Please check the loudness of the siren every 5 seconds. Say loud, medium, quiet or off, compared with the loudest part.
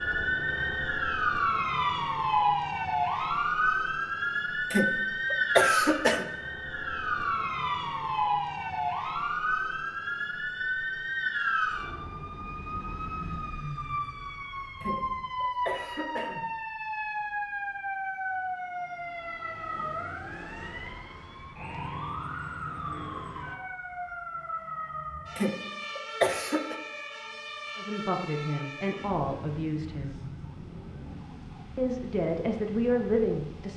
loud, loud, medium, medium, medium, quiet, quiet.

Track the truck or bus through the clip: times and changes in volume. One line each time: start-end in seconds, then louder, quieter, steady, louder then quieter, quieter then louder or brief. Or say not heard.
not heard.